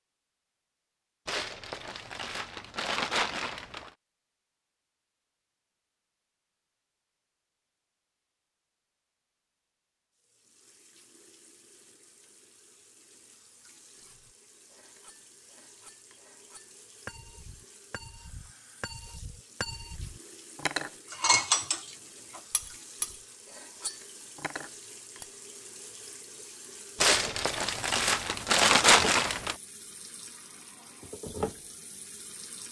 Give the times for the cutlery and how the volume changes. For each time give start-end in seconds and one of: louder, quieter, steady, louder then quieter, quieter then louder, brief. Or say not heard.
14.0-25.3 louder then quieter.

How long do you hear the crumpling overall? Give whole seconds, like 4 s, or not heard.
5 s.